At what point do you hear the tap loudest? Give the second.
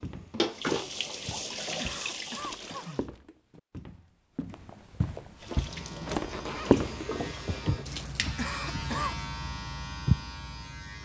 1 s.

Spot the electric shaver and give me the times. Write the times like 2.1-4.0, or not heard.
5.5-11.0.